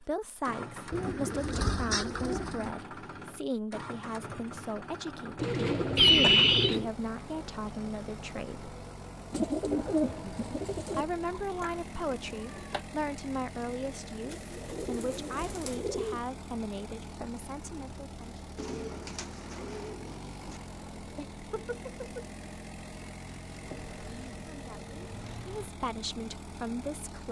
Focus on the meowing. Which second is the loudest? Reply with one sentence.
The loudest moment of the meowing is at 6 seconds.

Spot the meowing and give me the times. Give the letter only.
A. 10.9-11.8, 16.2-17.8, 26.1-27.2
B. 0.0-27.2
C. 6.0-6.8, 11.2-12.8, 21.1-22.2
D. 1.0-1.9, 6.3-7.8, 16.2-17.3
C.